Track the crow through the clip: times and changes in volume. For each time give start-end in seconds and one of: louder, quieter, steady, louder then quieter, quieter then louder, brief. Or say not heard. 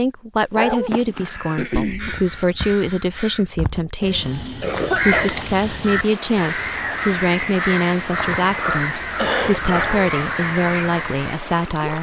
0.4-11.4 louder.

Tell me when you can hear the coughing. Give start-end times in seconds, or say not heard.
1.6-2.5, 4.6-5.5, 8.7-9.9.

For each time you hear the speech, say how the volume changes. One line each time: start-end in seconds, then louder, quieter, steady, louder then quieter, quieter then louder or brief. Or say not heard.
0.0-11.9 steady.